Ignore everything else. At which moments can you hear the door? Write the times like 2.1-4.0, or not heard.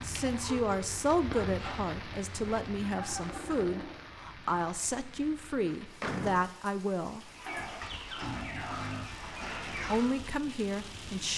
5.5-6.5.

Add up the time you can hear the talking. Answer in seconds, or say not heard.
9 s.